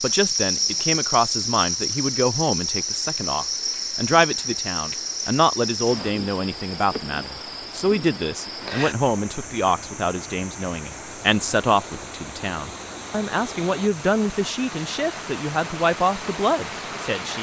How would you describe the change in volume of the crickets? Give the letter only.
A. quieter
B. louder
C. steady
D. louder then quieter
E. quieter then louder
A.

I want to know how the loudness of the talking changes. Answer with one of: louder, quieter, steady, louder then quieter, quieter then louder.
steady.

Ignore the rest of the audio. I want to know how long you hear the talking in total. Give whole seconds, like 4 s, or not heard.
17 s.